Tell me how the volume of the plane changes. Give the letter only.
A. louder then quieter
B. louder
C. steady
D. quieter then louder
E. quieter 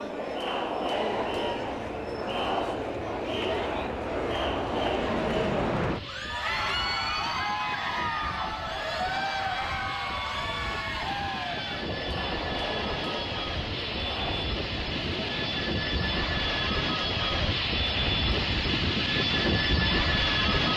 B.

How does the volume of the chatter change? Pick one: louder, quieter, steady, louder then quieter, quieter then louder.
quieter.